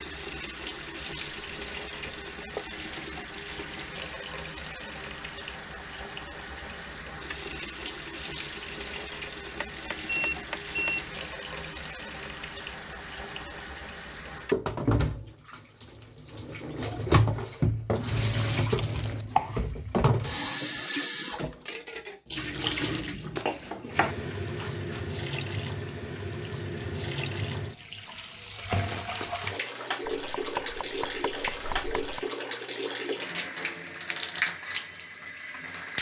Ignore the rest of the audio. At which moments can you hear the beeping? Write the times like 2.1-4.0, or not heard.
10.1-11.0.